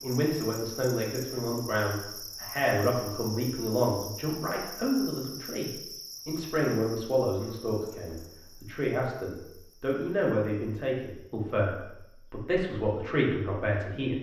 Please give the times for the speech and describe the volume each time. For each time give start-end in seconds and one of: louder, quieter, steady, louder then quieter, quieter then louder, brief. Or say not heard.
0.0-14.1 steady.